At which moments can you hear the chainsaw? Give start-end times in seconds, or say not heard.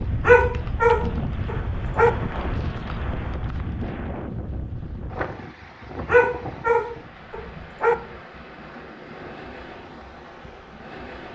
not heard.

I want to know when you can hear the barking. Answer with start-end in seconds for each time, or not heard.
0.2-2.1, 6.0-8.0.